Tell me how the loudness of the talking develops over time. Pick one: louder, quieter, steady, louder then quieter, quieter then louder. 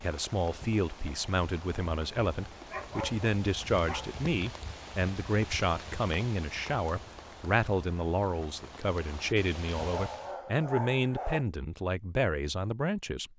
steady.